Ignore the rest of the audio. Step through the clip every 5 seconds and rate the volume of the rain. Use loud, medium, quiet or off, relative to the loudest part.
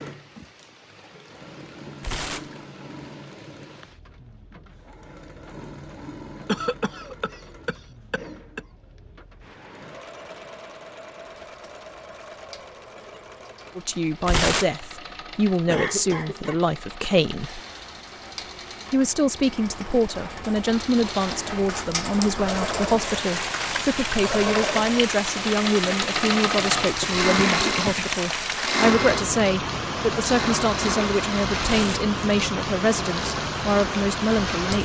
quiet, quiet, quiet, quiet, loud, loud, loud.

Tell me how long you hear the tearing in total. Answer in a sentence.
The tearing can be heard for 2 seconds in total.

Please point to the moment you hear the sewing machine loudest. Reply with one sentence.
The loudest moment of the sewing machine is at 27 seconds.